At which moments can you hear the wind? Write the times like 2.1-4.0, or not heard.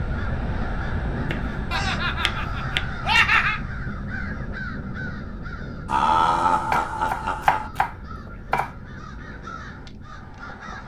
0.0-10.8.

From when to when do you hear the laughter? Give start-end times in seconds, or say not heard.
1.7-3.6, 5.8-7.7.